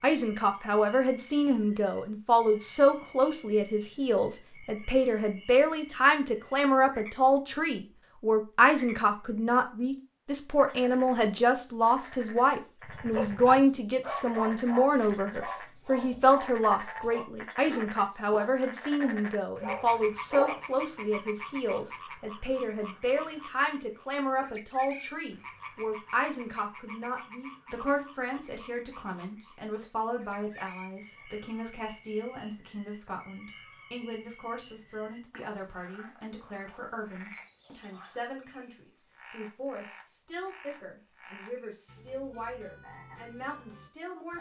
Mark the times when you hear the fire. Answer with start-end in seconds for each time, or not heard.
not heard.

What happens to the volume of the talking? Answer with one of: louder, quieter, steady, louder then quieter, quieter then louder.
quieter.